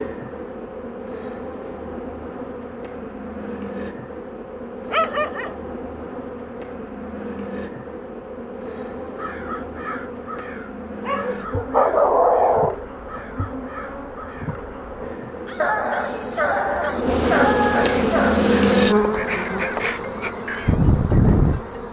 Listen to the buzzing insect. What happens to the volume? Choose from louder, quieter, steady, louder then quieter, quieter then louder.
louder.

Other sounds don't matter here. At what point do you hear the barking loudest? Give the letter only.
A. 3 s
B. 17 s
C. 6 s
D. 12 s
D.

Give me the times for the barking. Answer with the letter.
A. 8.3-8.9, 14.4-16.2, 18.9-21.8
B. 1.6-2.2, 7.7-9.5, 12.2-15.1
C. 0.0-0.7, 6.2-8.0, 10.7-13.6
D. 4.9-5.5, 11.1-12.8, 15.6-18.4
D.